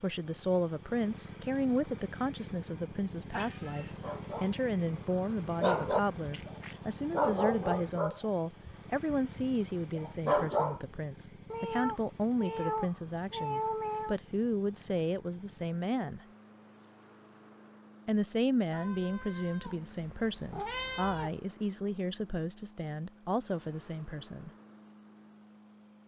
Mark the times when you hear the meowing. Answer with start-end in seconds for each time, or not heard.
3.3-4.0, 11.5-14.2, 18.7-21.4.